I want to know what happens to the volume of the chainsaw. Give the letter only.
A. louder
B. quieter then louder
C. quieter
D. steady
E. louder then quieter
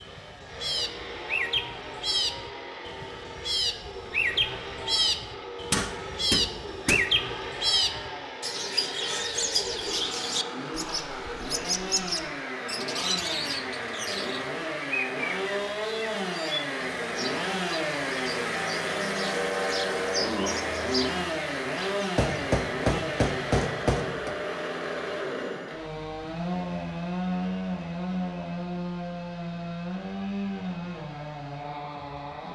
A.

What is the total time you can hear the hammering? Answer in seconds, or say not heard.
4 s.